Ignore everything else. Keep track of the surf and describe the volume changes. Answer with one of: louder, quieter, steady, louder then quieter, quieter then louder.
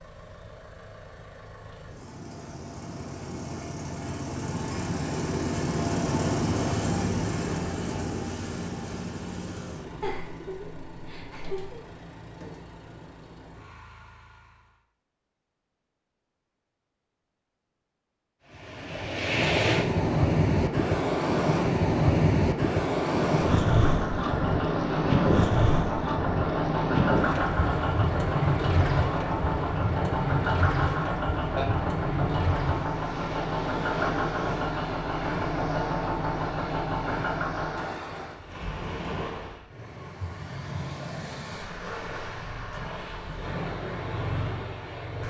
quieter.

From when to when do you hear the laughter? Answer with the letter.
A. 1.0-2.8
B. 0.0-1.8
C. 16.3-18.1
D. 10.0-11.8
D.